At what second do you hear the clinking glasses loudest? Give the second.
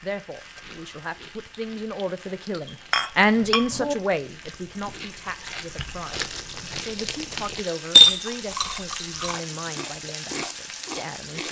8 s.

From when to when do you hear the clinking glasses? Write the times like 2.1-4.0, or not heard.
2.9-4.0, 8.0-9.1.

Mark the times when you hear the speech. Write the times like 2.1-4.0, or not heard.
0.0-11.4.